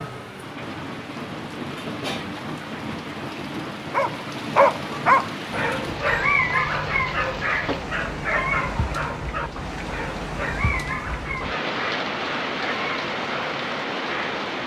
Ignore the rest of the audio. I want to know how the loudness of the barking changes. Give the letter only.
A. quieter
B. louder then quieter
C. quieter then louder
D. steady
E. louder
A.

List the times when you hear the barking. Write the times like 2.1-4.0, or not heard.
3.9-14.4.